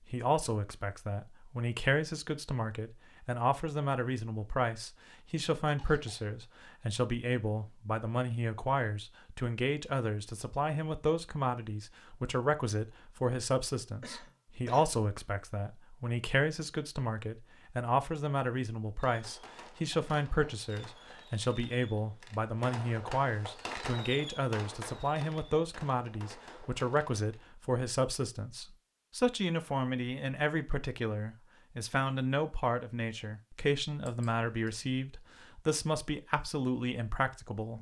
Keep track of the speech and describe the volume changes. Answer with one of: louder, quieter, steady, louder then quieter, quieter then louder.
steady.